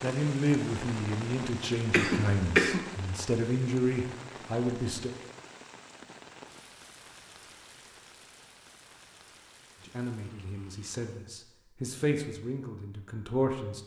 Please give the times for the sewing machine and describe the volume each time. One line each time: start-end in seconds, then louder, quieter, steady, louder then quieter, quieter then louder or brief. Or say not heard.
not heard.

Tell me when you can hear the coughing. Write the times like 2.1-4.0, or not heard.
1.9-2.9.